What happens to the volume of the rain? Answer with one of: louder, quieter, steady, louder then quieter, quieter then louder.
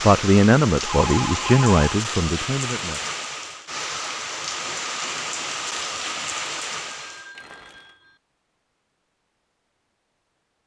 steady.